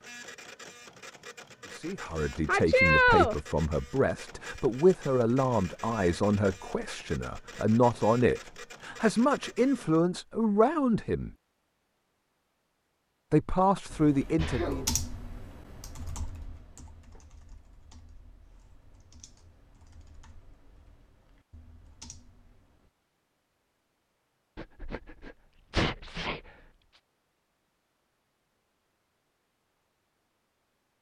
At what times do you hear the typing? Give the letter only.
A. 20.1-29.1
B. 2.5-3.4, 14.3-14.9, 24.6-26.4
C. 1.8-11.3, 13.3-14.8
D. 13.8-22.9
D.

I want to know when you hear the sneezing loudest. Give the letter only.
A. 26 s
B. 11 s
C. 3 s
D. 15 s
C.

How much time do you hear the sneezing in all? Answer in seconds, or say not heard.
3 s.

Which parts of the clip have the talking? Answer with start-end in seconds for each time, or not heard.
1.8-11.3, 13.3-14.8.